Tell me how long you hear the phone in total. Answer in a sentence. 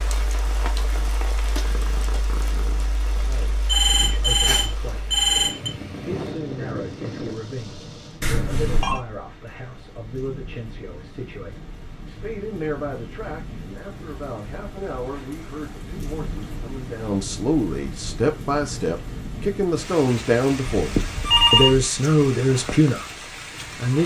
The phone can be heard for 4 seconds in total.